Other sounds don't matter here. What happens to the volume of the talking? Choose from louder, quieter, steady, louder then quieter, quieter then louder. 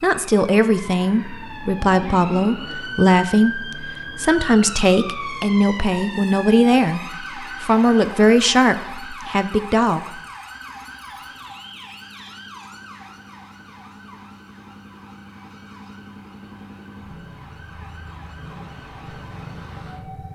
steady.